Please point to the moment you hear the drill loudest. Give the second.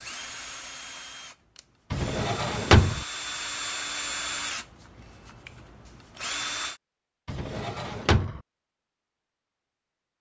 4 s.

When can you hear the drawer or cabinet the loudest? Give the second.
3 s.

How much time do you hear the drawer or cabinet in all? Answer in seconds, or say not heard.
2 s.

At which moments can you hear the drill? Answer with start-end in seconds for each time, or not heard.
0.0-6.8.